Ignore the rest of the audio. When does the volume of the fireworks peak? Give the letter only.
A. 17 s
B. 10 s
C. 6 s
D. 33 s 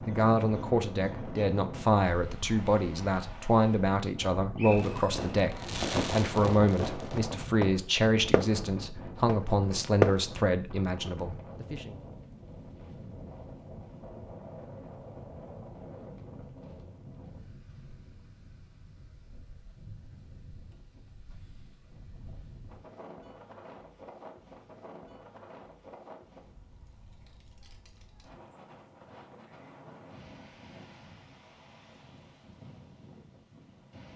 B.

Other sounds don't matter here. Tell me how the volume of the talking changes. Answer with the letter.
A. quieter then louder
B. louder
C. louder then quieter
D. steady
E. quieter
D.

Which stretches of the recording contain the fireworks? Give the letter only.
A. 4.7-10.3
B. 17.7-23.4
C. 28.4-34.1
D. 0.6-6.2
A.